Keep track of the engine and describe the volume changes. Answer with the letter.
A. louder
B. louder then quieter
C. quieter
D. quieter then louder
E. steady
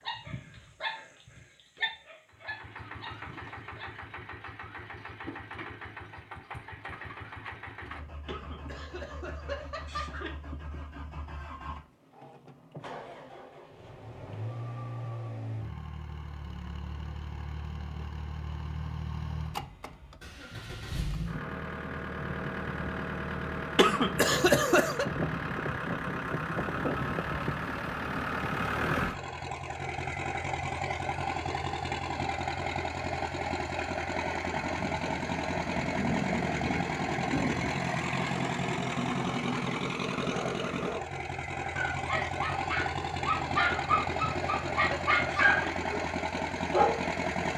A.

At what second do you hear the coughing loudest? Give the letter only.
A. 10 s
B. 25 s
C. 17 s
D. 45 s
B.